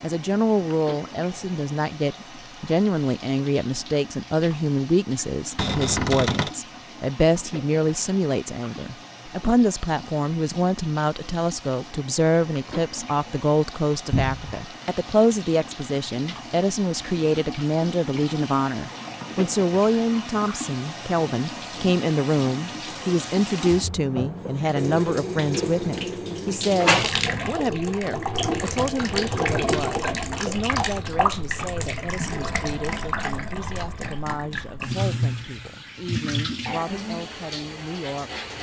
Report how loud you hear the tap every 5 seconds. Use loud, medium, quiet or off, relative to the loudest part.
quiet, quiet, quiet, medium, medium, loud, loud, loud.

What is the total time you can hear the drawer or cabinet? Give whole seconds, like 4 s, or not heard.
2 s.